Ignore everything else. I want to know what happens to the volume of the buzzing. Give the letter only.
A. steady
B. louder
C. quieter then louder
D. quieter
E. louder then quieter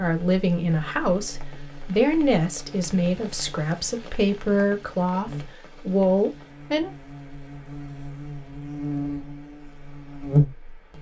B.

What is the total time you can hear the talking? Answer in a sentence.
The talking can be heard for 7 seconds in total.